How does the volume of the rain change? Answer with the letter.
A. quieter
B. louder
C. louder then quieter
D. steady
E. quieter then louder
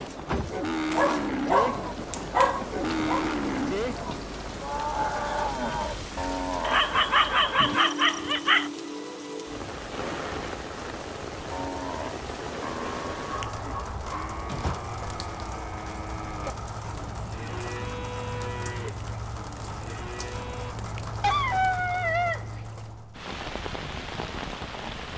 D.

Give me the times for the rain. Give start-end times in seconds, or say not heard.
0.0-25.1.